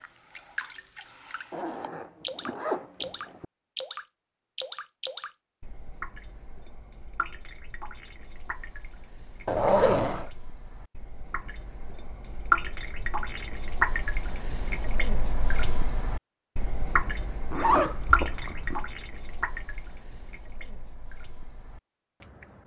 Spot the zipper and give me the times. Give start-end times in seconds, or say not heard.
1.5-3.5, 9.4-10.3, 17.5-18.9.